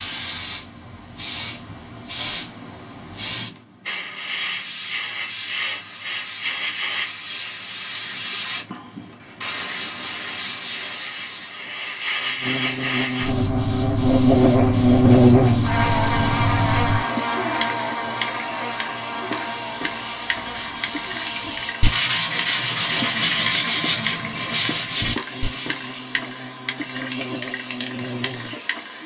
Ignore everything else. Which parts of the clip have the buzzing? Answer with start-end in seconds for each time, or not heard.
12.2-29.0.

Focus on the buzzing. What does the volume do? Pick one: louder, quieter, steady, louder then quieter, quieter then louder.
quieter.